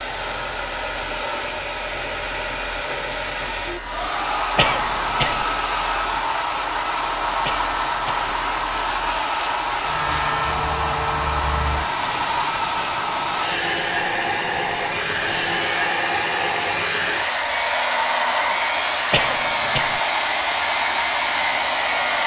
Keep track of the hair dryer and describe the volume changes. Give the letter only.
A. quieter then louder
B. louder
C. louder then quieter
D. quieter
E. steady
E.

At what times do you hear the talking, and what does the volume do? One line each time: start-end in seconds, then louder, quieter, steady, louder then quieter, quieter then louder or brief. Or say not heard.
not heard.